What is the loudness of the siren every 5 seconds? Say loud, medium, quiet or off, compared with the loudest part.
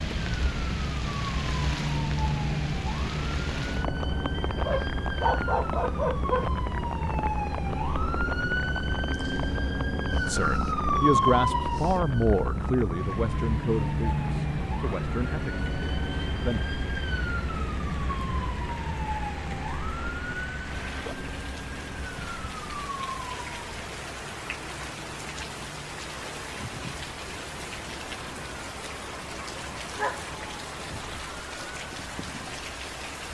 loud, loud, loud, medium, medium, quiet, quiet.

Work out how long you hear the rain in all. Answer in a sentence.
The rain can be heard for 33 seconds in total.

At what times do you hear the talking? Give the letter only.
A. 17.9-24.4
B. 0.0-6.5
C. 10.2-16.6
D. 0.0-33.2
C.